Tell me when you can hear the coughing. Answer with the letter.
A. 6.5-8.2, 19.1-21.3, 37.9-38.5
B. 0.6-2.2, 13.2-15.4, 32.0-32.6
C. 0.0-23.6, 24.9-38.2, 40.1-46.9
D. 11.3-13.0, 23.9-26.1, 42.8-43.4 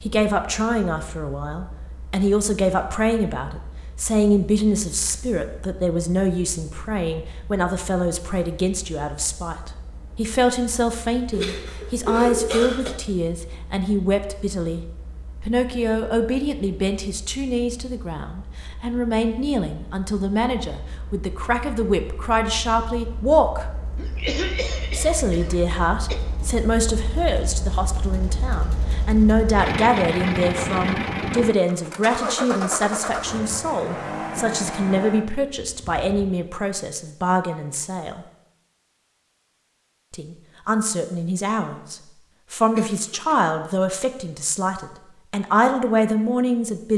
D.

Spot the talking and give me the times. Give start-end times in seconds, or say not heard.
0.0-23.6, 24.9-38.2, 40.1-46.9.